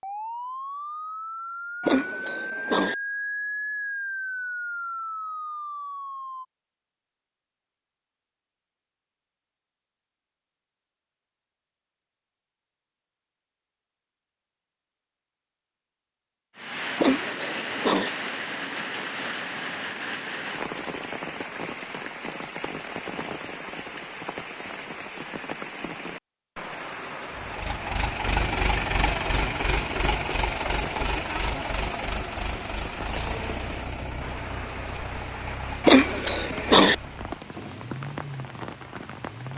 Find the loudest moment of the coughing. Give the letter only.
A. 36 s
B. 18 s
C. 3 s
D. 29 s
A.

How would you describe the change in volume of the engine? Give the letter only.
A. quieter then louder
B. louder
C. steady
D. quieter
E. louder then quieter
D.